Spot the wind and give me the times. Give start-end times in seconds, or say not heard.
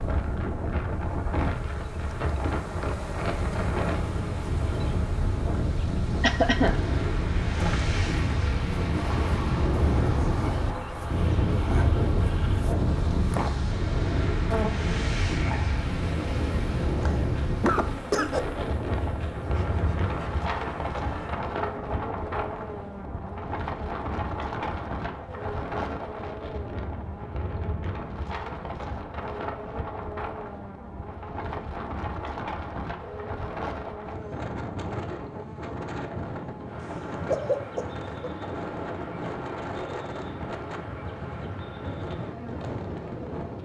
0.0-43.6.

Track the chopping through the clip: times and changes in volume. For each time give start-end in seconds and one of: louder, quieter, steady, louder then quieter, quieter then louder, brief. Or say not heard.
not heard.